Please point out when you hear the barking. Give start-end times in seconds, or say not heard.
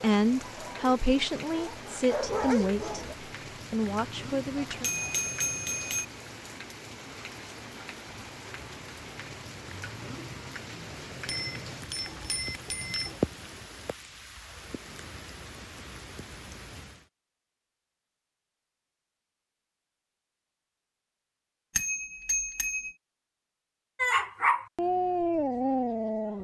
0.2-3.1, 23.9-26.3.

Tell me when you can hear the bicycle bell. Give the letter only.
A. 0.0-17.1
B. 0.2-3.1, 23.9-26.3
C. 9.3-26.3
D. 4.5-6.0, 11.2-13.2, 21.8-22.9
D.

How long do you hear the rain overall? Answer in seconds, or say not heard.
17 s.